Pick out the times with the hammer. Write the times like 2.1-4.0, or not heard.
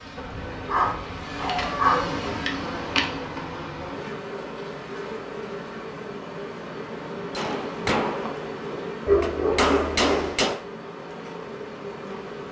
7.3-10.6.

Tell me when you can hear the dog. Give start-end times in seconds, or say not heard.
0.1-2.1, 9.1-10.3.